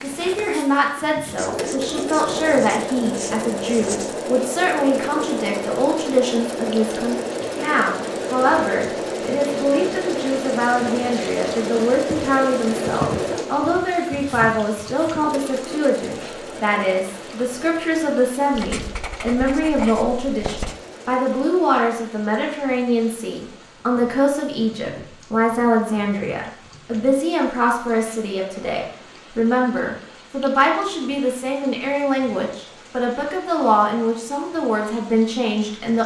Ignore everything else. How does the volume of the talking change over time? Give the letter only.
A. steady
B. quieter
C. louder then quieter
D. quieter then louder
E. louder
A.